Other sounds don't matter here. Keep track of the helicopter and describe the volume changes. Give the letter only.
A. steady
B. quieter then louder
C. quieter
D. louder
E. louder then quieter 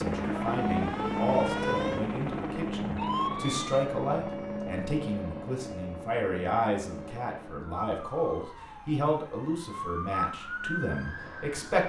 C.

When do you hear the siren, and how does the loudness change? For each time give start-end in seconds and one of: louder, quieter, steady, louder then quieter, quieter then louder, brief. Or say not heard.
0.1-11.8 quieter then louder.